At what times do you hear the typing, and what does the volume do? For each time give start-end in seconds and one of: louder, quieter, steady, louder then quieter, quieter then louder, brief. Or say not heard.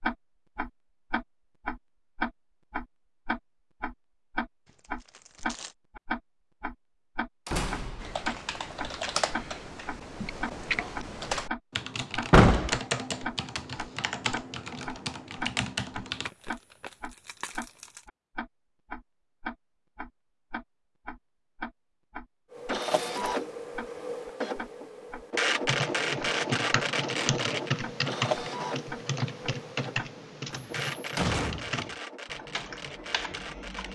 8.0-16.3 steady
25.6-33.9 quieter.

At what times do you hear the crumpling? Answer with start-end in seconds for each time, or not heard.
4.7-5.8, 16.2-18.1, 22.8-23.3.